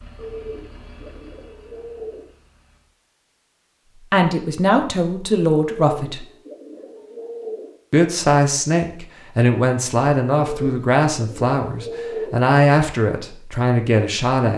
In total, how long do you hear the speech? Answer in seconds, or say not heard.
9 s.